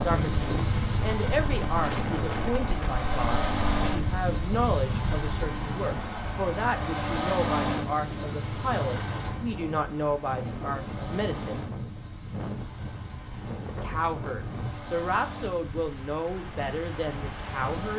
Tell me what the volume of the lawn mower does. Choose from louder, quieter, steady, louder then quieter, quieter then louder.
quieter.